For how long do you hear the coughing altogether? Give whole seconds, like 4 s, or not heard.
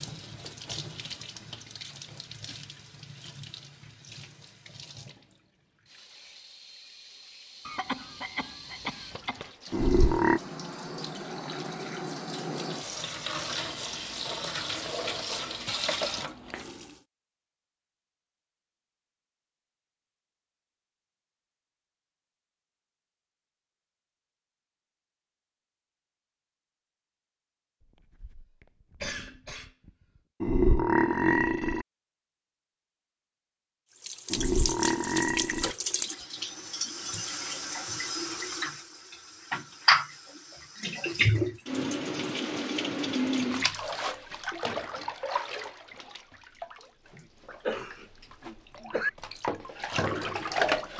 6 s.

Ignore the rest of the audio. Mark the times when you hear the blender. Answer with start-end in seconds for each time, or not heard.
not heard.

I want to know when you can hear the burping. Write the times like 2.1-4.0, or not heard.
9.7-10.4, 30.4-31.9, 34.3-35.8.